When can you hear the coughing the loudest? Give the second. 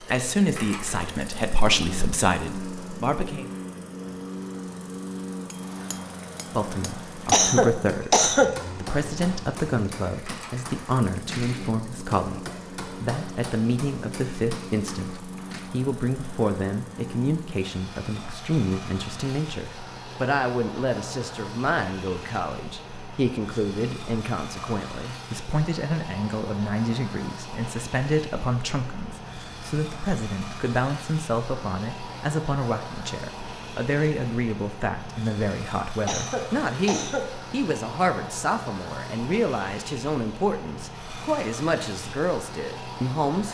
8 s.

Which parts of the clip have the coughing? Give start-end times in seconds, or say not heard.
7.3-8.6, 36.0-37.3.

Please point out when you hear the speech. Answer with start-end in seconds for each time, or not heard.
0.1-3.5, 6.5-43.4.